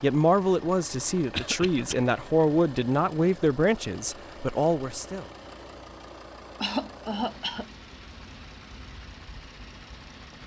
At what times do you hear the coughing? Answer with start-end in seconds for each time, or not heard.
1.3-1.9, 6.6-7.7.